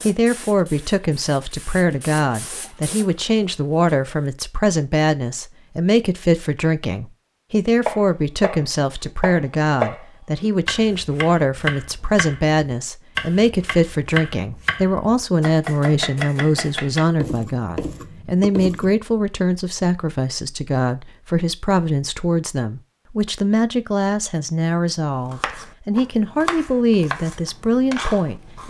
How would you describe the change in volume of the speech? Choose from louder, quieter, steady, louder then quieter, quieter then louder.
steady.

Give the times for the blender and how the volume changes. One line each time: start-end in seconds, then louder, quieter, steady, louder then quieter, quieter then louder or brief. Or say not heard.
not heard.